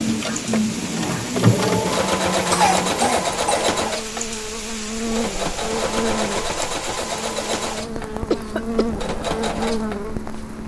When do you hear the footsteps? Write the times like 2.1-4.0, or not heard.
not heard.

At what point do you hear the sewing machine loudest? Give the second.
2 s.